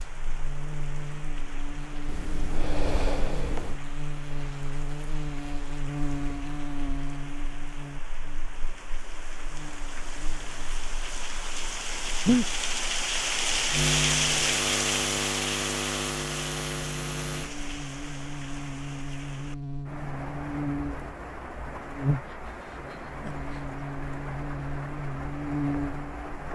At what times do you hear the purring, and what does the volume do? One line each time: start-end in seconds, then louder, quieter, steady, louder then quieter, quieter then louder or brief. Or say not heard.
not heard.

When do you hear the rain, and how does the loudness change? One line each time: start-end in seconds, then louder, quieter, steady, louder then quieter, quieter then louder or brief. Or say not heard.
0.0-26.4 louder then quieter.